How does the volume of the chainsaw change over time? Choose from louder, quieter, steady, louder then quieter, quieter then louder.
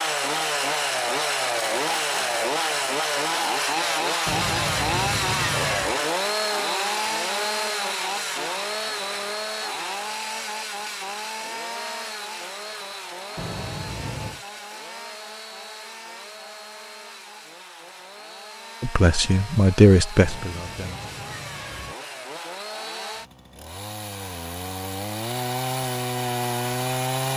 quieter then louder.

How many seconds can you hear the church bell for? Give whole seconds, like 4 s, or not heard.
not heard.